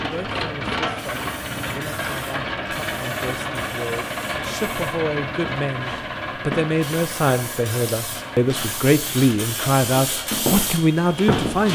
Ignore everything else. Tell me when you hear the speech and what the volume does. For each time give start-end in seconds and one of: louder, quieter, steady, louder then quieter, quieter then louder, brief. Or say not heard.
0.0-11.7 louder.